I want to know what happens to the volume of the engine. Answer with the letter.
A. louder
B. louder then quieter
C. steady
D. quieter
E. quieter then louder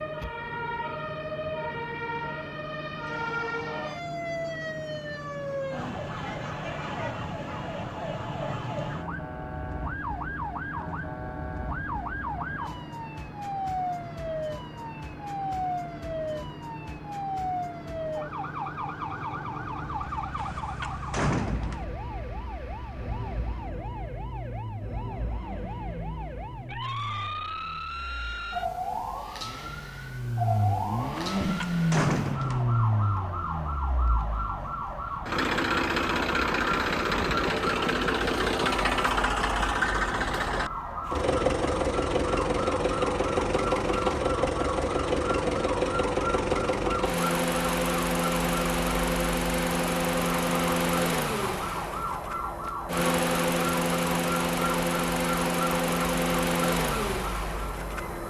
A.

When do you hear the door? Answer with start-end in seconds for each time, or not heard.
20.4-21.9, 31.4-32.6.